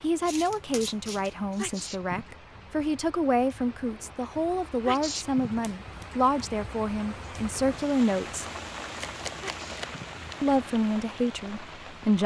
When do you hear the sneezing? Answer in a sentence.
The sneezing can be heard from 1.6 to 2.4 s, from 4.8 to 6.0 s and from 9.4 to 10.3 s.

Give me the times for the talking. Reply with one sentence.
The talking can be heard from 0.0 to 8.4 s and from 10.4 to 12.2 s.